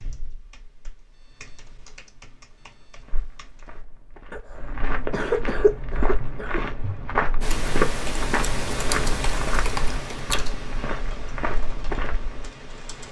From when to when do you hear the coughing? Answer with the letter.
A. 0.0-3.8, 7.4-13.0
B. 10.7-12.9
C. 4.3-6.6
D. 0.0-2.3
C.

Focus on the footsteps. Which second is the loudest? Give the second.
8 s.